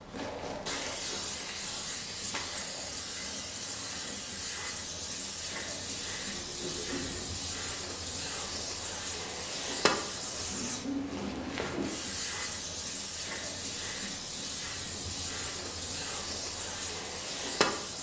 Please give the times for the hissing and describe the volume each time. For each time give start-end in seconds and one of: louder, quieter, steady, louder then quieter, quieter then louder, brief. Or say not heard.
0.0-17.9 steady.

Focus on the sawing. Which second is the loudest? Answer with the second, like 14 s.
11 s.